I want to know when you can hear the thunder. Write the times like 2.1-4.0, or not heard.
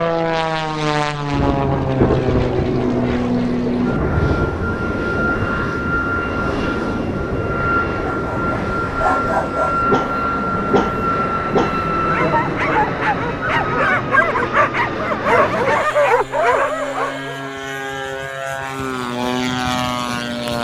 1.3-4.5.